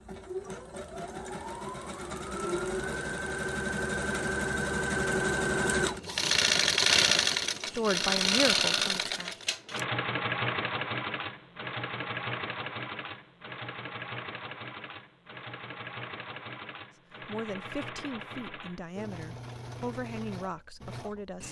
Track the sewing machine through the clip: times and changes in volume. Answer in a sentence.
You can hear the sewing machine from 0.0 to 21.4 s, getting louder then quieter.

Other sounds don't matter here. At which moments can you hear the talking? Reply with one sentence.
You can hear the talking from 7.8 to 9.4 s and from 17.2 to 21.4 s.